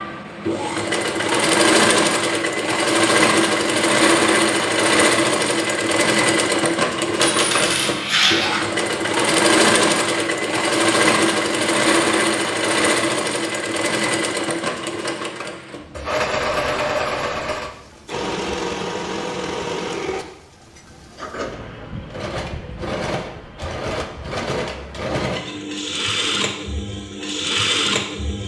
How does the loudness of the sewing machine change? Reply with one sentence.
The volume of the sewing machine goes down.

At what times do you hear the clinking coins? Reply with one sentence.
The clinking coins can be heard from 7.2 to 8.7 s.